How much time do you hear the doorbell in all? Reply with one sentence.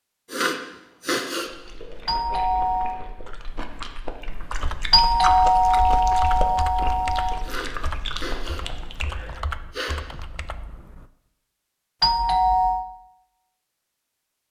You can hear the doorbell for 4 seconds altogether.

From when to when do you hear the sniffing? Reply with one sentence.
You can hear the sniffing from 0.2 to 1.5 s and from 7.4 to 10.0 s.